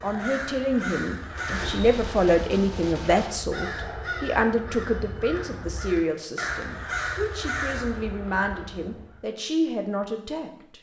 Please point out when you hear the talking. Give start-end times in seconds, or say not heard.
0.0-10.7.